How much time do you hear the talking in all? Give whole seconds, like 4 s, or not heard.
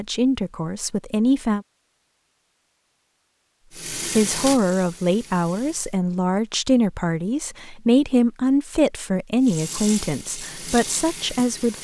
9 s.